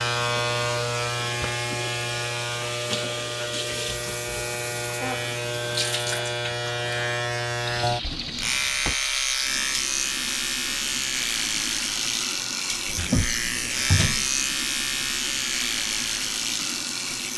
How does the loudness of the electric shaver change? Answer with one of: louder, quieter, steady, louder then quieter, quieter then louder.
steady.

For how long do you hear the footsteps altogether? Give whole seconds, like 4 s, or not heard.
not heard.